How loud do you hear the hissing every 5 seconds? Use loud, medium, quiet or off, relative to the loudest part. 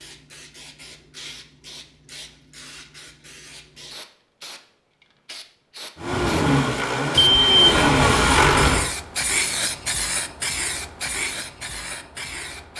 quiet, loud, loud.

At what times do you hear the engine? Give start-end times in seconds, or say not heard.
6.0-8.9.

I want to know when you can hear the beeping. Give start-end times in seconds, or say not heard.
7.2-8.8.